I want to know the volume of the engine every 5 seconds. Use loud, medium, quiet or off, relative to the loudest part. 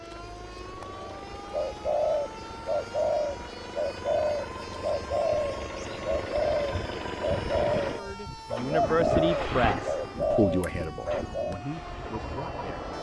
medium, loud, medium.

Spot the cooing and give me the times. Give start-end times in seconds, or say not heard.
0.1-11.6.